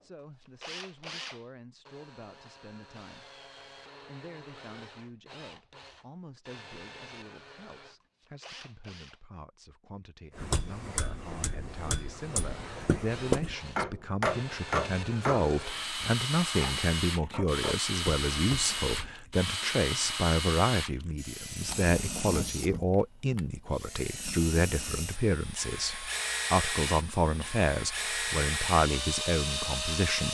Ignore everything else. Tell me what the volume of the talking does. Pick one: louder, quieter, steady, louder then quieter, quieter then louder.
louder.